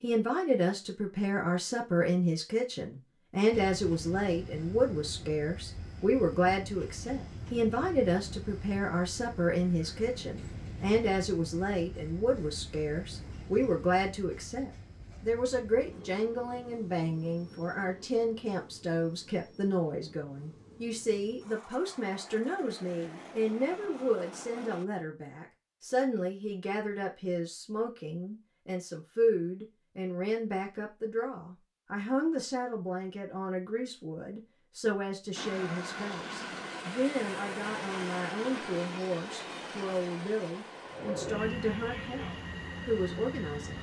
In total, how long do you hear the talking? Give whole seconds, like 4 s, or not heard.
44 s.